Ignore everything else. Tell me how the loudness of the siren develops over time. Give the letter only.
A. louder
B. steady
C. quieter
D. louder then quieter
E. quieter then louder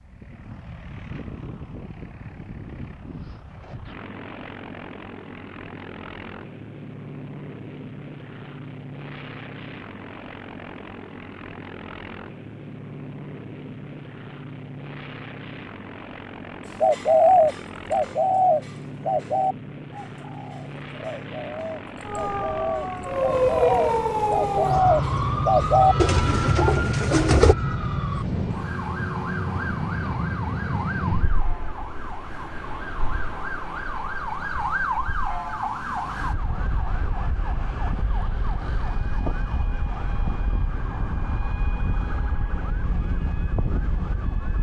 C.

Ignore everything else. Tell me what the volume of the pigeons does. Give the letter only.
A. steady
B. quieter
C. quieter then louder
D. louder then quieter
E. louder
C.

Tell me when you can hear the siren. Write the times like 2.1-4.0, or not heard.
22.1-44.5.